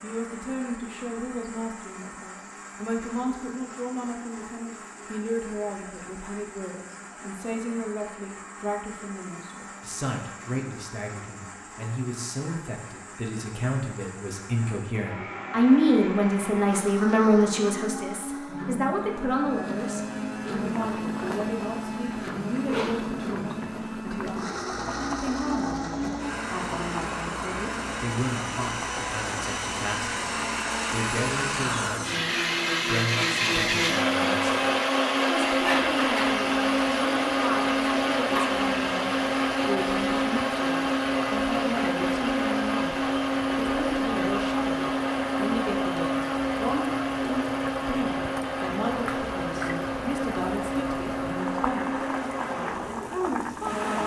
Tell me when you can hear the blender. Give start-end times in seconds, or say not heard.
0.0-54.0.